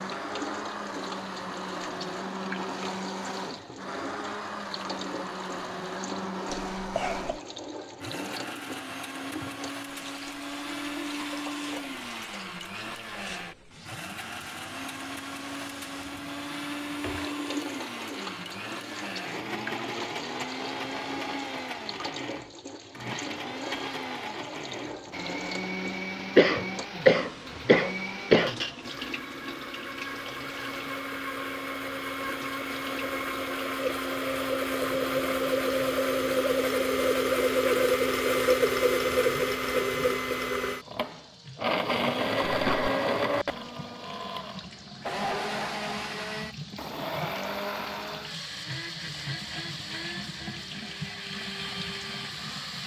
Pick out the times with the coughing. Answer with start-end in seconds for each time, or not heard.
6.5-7.3, 26.4-28.5, 42.5-42.9.